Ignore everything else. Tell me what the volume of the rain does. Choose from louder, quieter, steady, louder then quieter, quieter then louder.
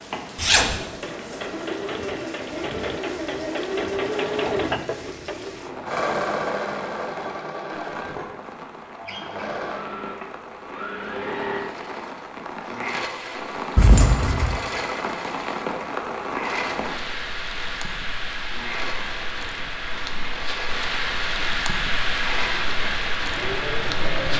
louder.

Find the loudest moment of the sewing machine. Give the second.
4 s.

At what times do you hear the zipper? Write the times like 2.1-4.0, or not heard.
0.3-0.8, 13.8-14.6.